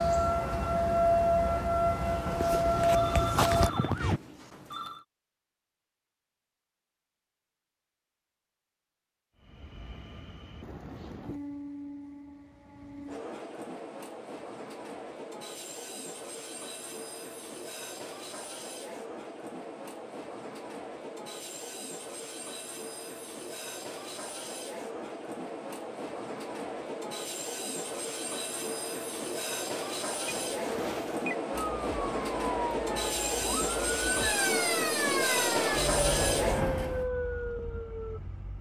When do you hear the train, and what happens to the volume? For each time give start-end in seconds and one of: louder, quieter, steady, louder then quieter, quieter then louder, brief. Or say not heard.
9.3-37.0 louder.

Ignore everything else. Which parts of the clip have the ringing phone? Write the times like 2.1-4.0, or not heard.
2.9-5.0, 30.3-31.4.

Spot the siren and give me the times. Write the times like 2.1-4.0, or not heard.
0.0-4.2, 31.5-38.5.